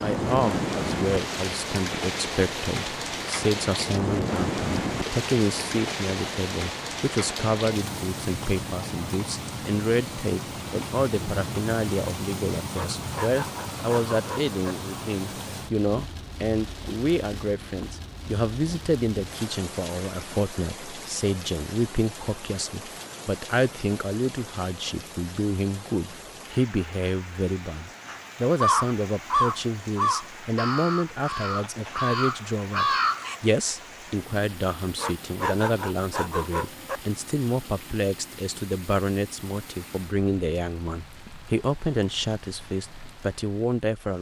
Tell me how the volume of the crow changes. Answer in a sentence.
The loudness of the crow goes down, then up.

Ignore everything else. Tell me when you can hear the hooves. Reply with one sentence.
You can't hear the hooves here.